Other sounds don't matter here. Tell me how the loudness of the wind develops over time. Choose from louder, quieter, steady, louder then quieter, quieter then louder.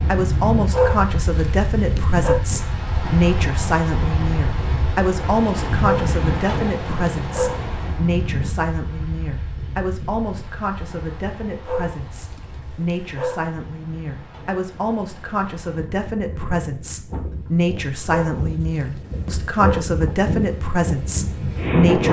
quieter then louder.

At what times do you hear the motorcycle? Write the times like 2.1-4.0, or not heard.
not heard.